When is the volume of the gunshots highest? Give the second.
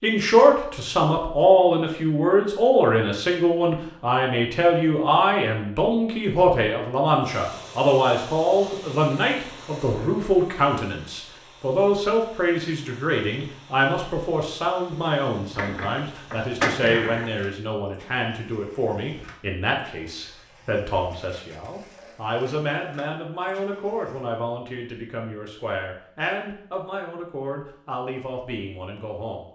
17 s.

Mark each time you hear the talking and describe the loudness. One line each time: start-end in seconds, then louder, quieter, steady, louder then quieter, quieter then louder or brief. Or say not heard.
0.0-29.4 quieter.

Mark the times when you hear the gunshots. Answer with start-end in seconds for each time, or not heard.
15.4-17.3.